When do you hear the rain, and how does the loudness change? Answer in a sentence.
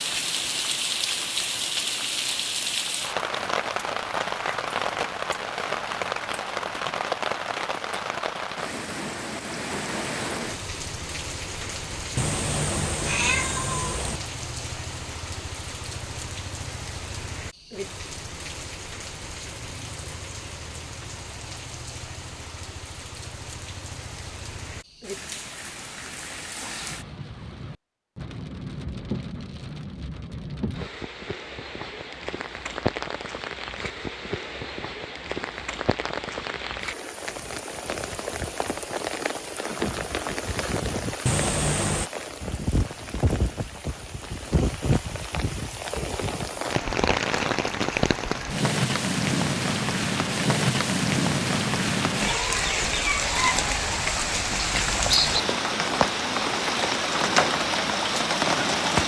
The rain can be heard from 0.0 to 59.0 s, getting quieter then louder.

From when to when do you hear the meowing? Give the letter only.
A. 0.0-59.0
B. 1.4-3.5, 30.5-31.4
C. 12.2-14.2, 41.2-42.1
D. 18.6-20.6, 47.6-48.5
C.